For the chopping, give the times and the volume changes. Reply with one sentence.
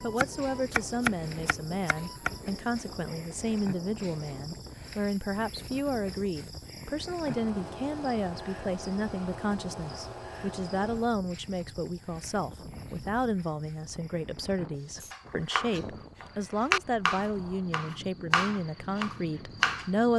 The chopping can be heard briefly from 0.0 to 2.4 s; and from 15.0 to 19.9 s, getting louder then quieter.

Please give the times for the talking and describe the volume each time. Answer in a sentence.
You can hear the talking from 0.0 to 20.1 s, at a steady volume.